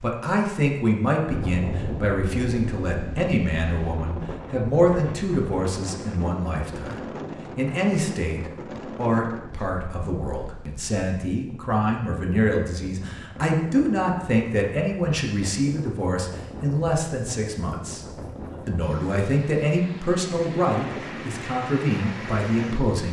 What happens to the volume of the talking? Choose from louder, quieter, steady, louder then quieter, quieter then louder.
steady.